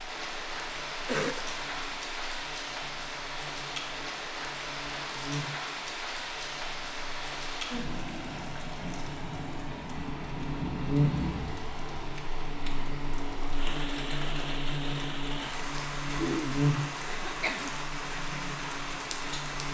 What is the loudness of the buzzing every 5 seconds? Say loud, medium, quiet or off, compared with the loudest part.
quiet, medium, loud, loud.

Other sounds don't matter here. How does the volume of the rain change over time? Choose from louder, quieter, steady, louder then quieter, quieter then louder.
steady.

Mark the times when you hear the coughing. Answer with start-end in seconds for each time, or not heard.
1.1-1.5, 16.1-17.8.